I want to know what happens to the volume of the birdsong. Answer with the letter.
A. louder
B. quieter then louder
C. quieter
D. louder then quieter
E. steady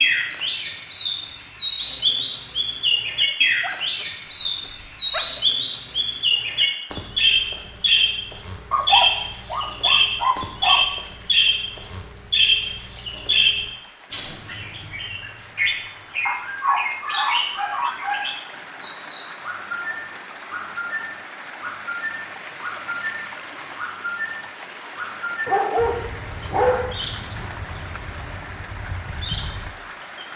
C.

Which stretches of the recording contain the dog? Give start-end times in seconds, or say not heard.
3.6-5.4, 8.7-10.8, 16.2-18.2, 25.4-27.6.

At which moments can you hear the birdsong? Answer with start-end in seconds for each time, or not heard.
0.0-30.2.